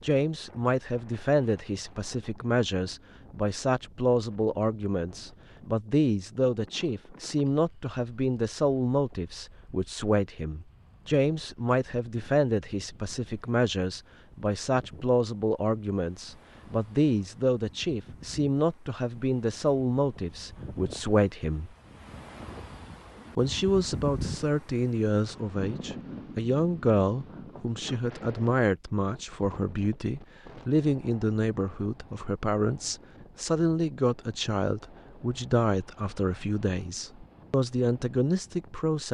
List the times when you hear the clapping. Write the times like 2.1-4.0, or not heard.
not heard.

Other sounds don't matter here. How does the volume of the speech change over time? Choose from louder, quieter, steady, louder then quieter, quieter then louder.
steady.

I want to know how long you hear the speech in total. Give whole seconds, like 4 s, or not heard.
37 s.